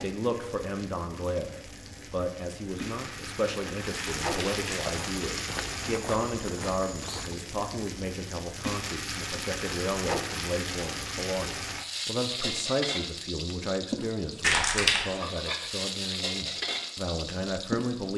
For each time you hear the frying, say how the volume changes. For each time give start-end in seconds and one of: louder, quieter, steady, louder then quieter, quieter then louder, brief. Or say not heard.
0.0-18.1 louder.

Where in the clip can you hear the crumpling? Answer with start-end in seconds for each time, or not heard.
4.0-4.9, 14.4-15.1.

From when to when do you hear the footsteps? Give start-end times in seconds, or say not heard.
4.8-7.5.